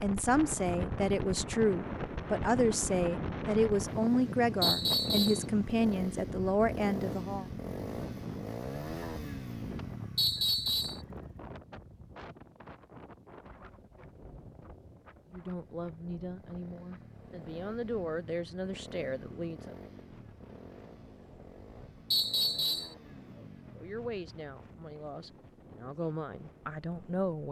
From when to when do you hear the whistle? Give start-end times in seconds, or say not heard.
4.6-5.5, 10.2-11.0, 22.1-22.9.